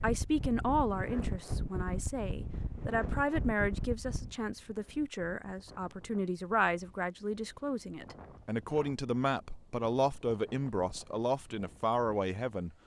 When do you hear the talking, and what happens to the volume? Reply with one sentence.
You can hear the talking from 0.0 to 12.7 s, at a steady volume.